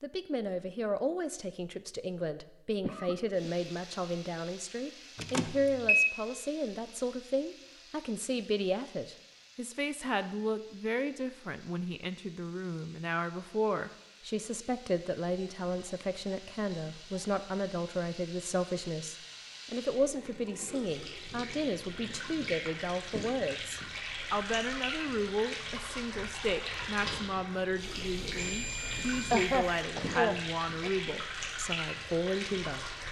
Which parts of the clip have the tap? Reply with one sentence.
You can hear the tap from 3.3 to 33.0 s.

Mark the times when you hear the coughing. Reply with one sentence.
You can hear the coughing from 2.8 to 3.5 s and from 29.3 to 30.9 s.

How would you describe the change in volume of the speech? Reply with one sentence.
The loudness of the speech stays about the same.